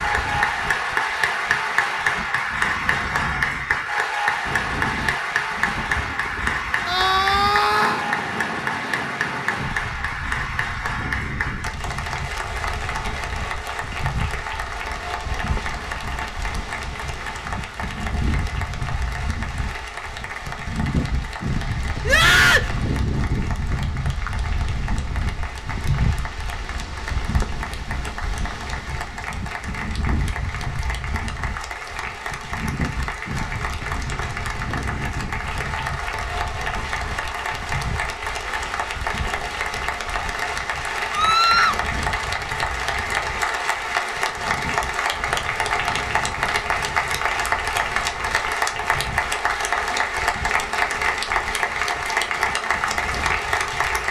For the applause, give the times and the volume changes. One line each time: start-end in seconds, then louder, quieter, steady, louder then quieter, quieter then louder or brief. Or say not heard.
0.0-54.0 quieter then louder.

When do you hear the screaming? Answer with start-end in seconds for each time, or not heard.
6.8-8.1, 22.1-22.7, 41.1-41.8.